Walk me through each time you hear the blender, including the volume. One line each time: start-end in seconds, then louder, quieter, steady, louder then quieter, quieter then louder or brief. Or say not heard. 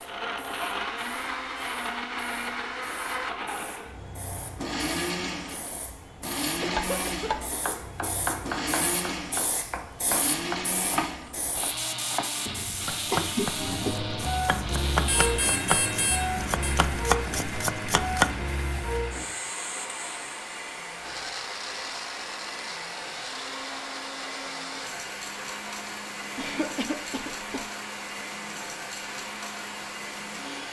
0.0-30.6 quieter.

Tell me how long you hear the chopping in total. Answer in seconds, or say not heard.
12 s.